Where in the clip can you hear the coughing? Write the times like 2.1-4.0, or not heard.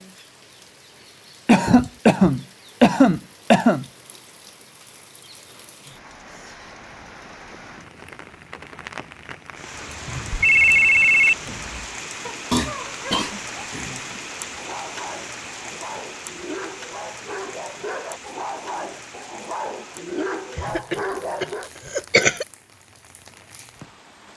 1.4-3.9, 12.5-13.9, 20.6-22.4.